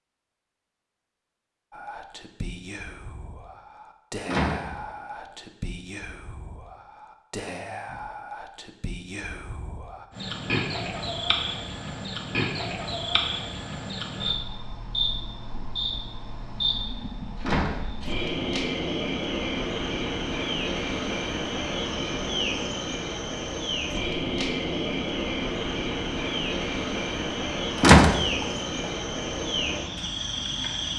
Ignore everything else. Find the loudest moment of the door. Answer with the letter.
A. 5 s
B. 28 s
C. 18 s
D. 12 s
B.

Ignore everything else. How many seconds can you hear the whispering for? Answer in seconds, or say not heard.
8 s.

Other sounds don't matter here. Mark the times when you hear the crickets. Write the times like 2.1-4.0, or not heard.
10.1-30.9.